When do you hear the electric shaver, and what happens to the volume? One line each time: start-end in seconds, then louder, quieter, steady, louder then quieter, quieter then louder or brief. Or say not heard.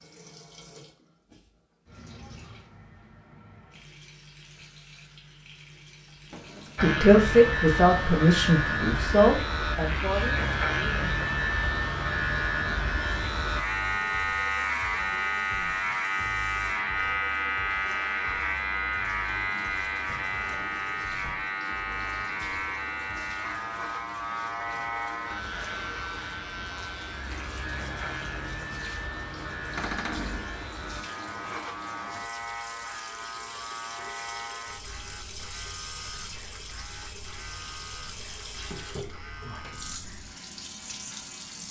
6.8-41.6 quieter.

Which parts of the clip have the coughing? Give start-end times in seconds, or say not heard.
not heard.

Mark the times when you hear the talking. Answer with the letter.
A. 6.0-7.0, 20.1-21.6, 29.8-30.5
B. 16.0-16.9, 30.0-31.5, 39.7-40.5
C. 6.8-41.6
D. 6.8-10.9
D.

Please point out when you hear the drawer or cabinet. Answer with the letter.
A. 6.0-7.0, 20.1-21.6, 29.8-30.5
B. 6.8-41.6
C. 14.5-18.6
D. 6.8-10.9
A.